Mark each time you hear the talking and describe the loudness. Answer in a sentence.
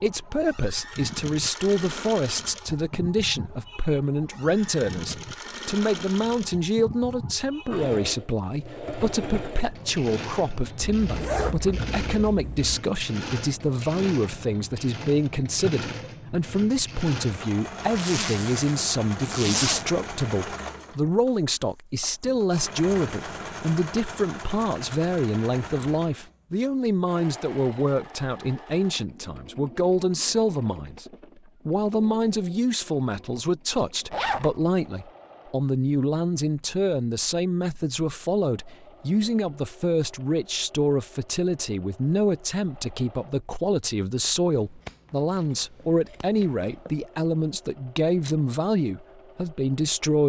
You can hear the talking from 0.0 to 31.1 s, at a steady volume; and from 31.6 to 50.2 s, at a steady volume.